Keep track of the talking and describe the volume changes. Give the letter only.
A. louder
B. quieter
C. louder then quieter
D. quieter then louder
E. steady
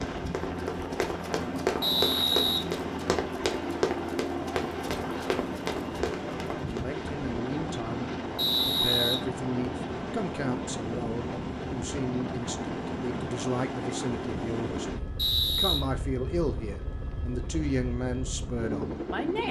E.